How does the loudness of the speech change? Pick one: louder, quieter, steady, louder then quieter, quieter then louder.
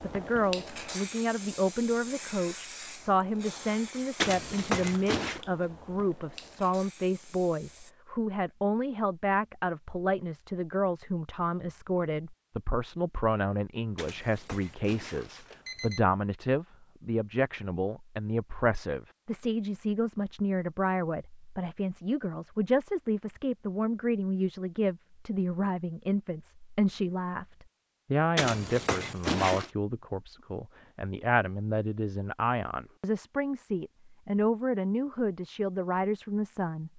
steady.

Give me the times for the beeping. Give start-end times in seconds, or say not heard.
4.2-5.4, 13.9-16.0, 28.4-29.7.